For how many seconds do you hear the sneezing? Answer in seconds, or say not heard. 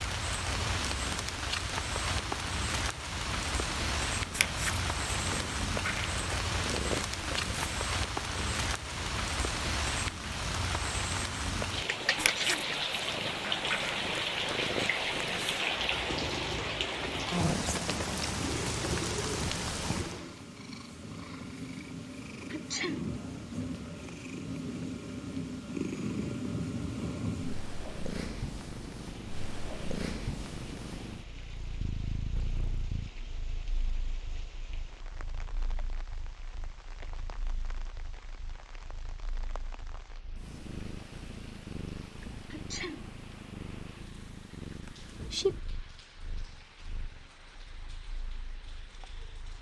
2 s.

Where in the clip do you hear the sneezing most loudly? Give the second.
23 s.